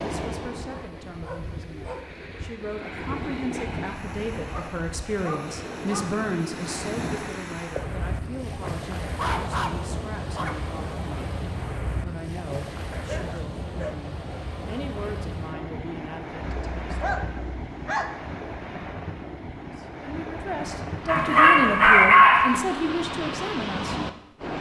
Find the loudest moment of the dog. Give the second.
22 s.